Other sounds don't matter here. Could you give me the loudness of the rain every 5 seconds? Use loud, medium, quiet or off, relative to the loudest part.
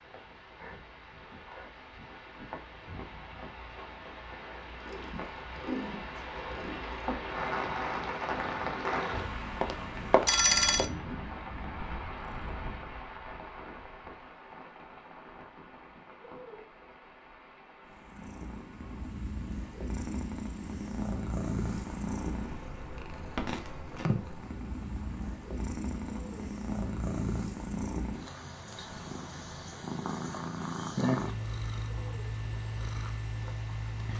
medium, loud, medium, quiet, quiet, quiet, quiet.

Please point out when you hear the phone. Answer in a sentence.
You can hear the phone from 9.2 to 10.9 s.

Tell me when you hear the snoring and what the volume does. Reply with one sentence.
You can't hear the snoring here.